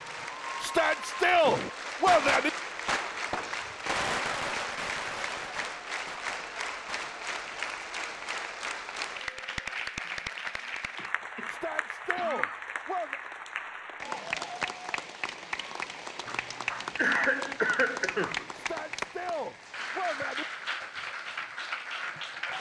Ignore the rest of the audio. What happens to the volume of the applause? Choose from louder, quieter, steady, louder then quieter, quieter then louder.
steady.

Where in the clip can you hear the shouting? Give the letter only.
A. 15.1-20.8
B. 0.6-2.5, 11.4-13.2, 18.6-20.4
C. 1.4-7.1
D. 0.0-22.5
B.